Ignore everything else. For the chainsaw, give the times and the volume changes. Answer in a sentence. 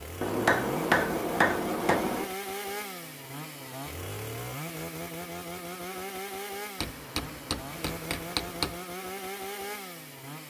The chainsaw can be heard from 0.0 to 10.4 s, at a steady volume.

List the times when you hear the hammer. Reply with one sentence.
You can hear the hammer from 0.2 to 2.3 s and from 6.8 to 8.8 s.